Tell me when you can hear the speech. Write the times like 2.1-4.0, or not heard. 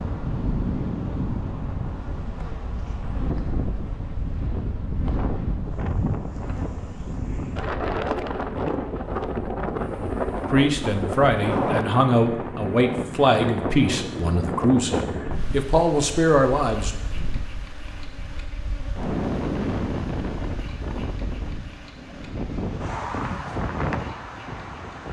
10.4-16.9.